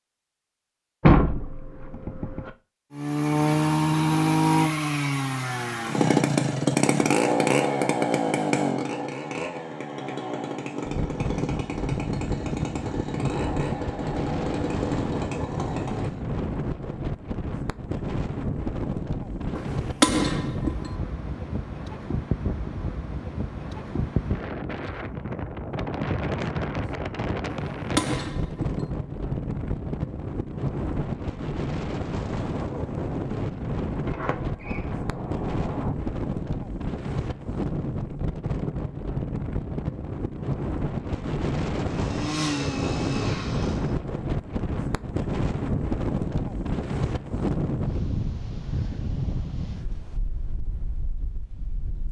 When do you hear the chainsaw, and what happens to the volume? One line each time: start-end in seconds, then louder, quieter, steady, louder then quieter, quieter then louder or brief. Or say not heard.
2.9-16.2 quieter
41.9-44.0 brief.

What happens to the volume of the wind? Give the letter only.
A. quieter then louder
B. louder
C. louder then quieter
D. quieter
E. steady
E.